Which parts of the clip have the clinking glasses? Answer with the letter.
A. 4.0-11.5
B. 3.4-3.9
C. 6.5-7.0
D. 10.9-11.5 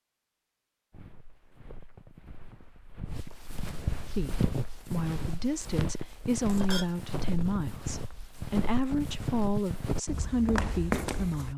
C.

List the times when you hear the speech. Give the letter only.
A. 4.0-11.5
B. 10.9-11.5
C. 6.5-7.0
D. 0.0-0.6
A.